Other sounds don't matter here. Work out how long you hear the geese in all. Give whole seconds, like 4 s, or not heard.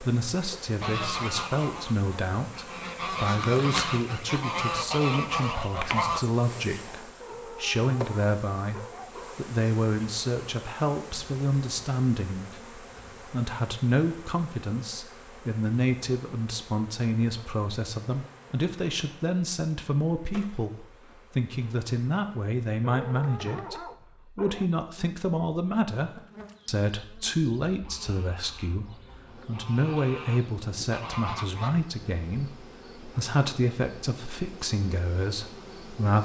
11 s.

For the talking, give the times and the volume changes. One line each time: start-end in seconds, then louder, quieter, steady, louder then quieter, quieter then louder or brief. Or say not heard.
0.0-36.1 steady.